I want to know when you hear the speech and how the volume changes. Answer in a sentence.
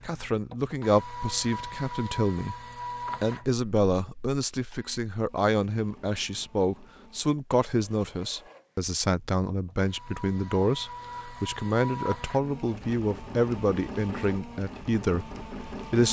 The speech can be heard briefly from 0.1 to 2.5 s; and from 3.2 to 16.0 s, at a steady volume.